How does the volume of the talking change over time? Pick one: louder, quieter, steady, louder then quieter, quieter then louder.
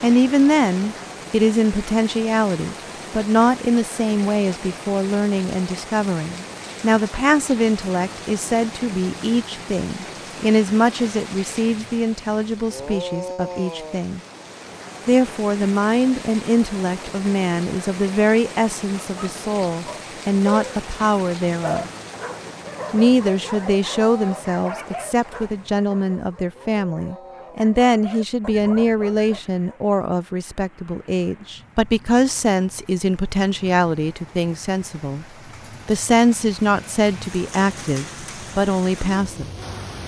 steady.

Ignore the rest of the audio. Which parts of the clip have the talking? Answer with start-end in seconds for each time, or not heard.
0.0-14.2, 15.1-21.9, 22.9-35.2, 35.9-39.5.